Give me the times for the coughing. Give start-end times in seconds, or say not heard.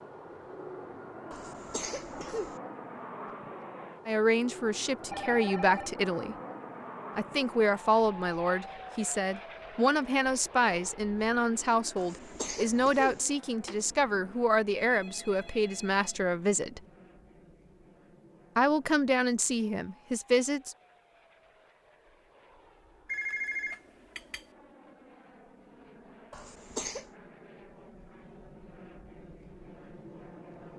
1.3-2.6, 11.9-13.2, 26.3-27.1.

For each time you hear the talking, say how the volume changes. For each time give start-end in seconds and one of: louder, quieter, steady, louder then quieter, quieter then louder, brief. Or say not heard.
4.0-6.3 brief
7.2-16.8 steady
18.6-20.8 brief.